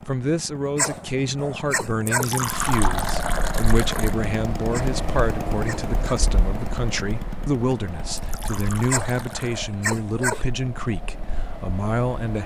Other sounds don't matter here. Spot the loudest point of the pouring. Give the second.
3 s.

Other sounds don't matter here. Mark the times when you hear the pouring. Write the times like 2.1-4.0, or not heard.
2.0-4.2, 8.2-9.7.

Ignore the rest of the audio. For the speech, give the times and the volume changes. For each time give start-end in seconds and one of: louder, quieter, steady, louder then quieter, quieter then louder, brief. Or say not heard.
0.1-12.4 steady.